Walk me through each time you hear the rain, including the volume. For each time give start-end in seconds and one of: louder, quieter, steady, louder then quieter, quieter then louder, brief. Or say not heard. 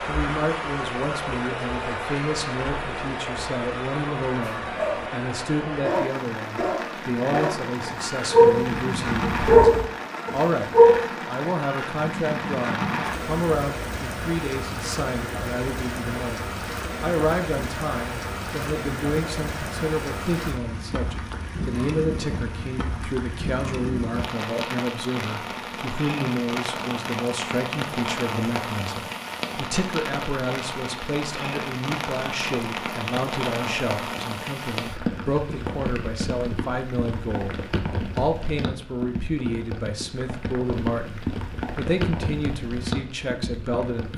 0.0-44.1 steady.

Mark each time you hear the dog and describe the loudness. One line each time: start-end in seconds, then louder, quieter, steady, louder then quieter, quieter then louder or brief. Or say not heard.
4.4-5.1 brief
5.8-11.1 louder then quieter.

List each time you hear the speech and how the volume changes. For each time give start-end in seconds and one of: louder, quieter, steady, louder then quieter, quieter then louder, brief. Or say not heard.
0.0-44.1 steady.